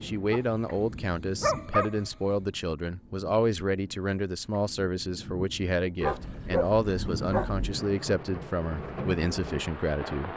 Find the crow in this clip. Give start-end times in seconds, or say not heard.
not heard.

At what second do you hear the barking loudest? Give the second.
2 s.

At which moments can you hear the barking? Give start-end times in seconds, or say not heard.
0.3-2.1, 6.0-7.8.